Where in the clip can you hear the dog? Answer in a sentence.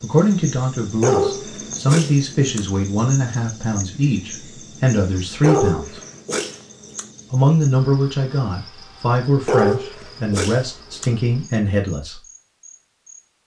You can hear the dog from 1.0 to 2.6 s, from 5.4 to 7.0 s and from 9.4 to 11.1 s.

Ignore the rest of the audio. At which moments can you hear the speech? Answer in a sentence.
The speech can be heard from 0.0 to 6.0 s and from 7.3 to 12.2 s.